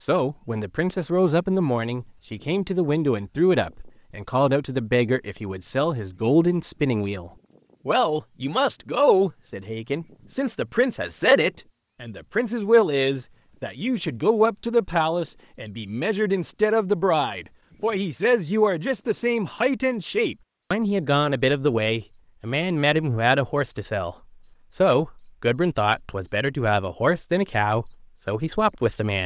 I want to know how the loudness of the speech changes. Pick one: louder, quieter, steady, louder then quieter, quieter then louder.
steady.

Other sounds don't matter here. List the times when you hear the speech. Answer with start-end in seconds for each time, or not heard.
0.0-24.1, 24.8-29.2.